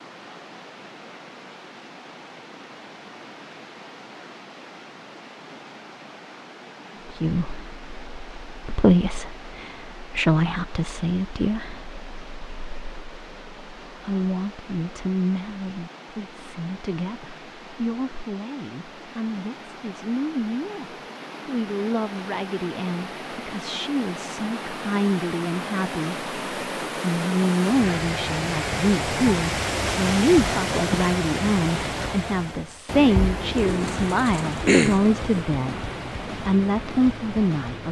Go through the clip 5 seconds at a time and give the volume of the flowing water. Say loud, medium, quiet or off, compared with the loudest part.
quiet, quiet, quiet, quiet, medium, loud, loud, medium.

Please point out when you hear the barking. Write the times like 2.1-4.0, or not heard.
not heard.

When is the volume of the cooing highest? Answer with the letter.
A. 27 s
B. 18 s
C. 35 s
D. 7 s
C.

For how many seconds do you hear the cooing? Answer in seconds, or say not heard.
2 s.